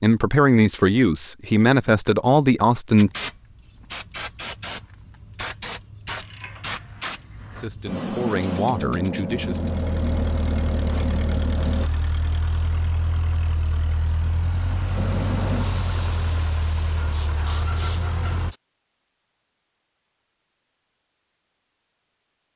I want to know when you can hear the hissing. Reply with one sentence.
The hissing can be heard from 3.0 to 11.9 s and from 14.9 to 18.6 s.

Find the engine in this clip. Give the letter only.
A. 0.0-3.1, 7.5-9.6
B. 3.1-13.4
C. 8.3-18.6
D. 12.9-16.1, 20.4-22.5
C.